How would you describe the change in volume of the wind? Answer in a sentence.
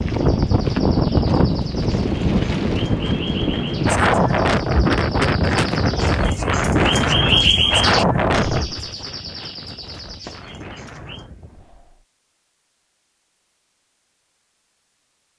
The volume of the wind goes down.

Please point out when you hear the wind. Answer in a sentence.
You can hear the wind from 0.0 to 12.1 s.